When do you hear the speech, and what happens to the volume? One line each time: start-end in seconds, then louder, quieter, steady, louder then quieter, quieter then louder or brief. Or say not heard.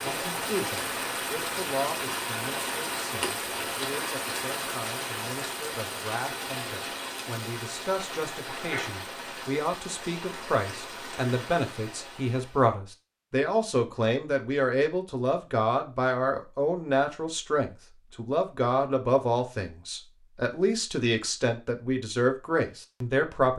0.0-23.5 louder.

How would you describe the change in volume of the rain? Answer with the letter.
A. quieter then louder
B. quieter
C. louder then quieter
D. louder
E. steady
B.